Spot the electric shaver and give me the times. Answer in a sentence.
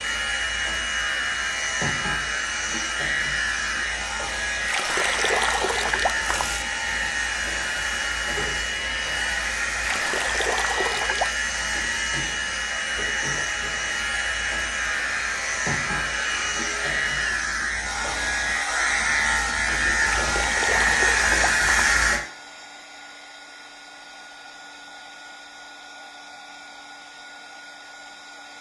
You can hear the electric shaver from 0.0 to 22.2 s.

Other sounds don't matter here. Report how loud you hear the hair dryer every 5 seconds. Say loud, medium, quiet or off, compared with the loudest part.
loud, loud, loud, loud, medium, medium.